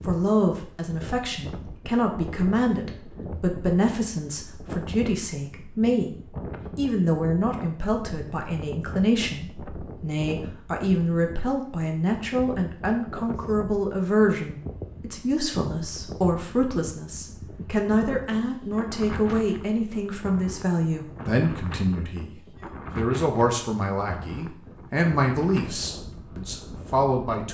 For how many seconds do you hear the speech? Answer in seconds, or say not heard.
27 s.